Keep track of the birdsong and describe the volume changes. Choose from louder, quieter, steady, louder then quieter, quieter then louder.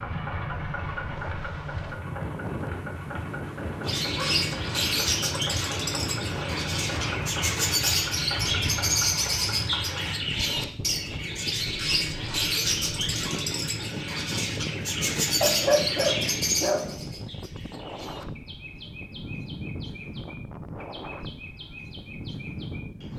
quieter.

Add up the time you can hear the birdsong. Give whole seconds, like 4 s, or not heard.
19 s.